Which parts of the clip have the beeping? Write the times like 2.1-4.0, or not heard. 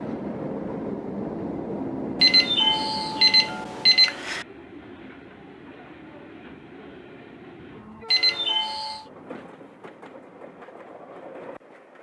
2.2-4.5, 8.1-9.1.